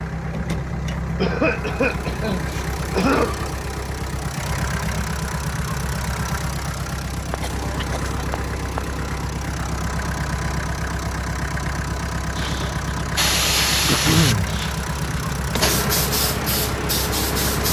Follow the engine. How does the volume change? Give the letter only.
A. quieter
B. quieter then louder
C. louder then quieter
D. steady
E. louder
D.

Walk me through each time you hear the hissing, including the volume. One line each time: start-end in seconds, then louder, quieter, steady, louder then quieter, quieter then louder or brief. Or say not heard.
12.3-17.6 quieter then louder.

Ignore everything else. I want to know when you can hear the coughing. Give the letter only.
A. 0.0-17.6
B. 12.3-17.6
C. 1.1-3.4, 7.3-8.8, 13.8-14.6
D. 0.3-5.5
C.